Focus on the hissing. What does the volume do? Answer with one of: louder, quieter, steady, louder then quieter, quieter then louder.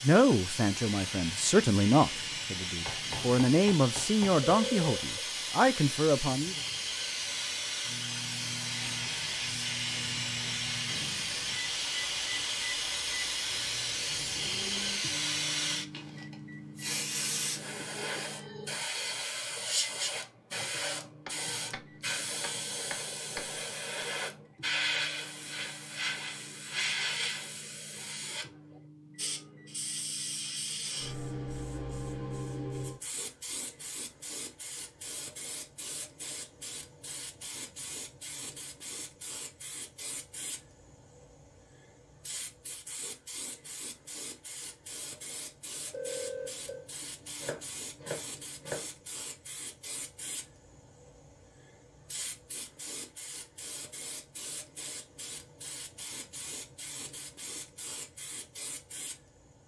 quieter.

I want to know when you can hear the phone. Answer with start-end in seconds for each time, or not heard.
4.5-5.1, 45.9-46.9.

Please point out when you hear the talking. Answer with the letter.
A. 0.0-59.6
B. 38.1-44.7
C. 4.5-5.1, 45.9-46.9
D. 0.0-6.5
D.